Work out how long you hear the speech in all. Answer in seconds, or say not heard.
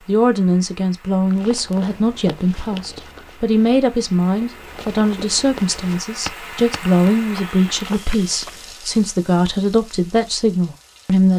11 s.